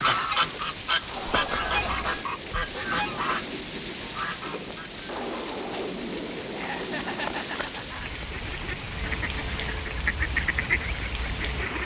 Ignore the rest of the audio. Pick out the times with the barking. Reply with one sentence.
You can't hear the barking here.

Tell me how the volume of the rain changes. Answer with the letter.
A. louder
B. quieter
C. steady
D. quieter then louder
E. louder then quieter
C.